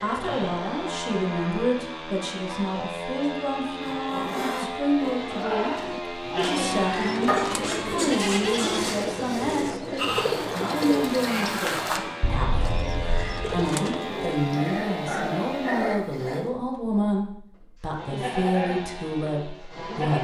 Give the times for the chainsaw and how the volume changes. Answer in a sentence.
You can hear the chainsaw from 0.0 to 15.9 s, at a steady volume; and briefly from 17.9 to 20.1 s.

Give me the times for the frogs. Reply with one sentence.
You can't hear the frogs here.